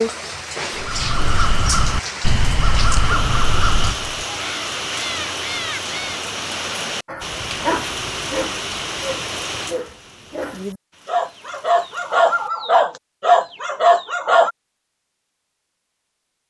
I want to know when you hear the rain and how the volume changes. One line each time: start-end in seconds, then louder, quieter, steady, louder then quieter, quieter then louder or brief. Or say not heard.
0.0-12.7 quieter.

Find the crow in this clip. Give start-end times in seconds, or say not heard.
0.8-6.2.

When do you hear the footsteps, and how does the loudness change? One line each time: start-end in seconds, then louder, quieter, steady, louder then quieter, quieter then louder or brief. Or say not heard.
not heard.